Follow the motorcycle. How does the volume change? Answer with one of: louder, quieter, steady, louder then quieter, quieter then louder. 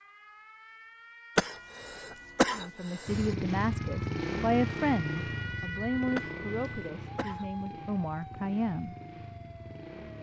quieter.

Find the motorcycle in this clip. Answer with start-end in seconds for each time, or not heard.
3.0-10.1.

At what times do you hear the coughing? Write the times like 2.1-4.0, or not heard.
1.4-3.4, 6.2-7.5.